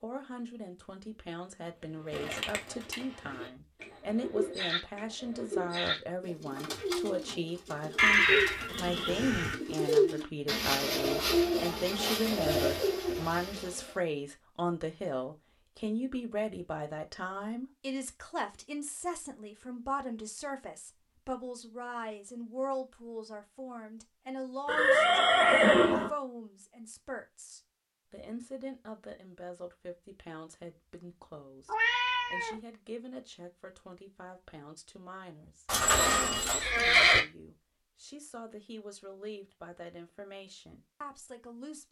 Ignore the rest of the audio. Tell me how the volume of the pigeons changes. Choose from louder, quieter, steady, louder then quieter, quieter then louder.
louder.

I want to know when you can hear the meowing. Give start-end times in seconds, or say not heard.
31.6-32.5.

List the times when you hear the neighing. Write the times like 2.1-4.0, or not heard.
8.0-9.6, 24.6-26.1, 35.6-37.2.